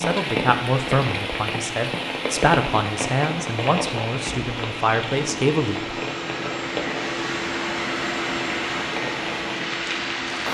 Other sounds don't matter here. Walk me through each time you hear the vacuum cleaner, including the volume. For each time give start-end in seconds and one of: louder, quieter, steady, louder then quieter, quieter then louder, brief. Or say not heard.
0.2-10.4 louder.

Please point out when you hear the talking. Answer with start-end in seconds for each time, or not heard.
0.0-6.0.